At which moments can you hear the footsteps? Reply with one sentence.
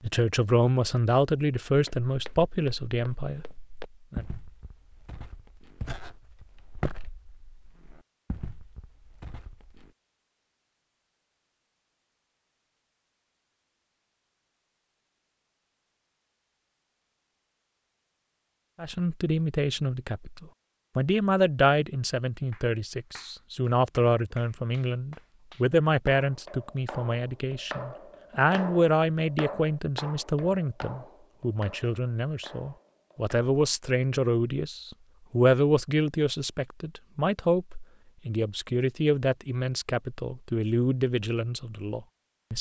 The footsteps can be heard from 1.9 to 9.9 s.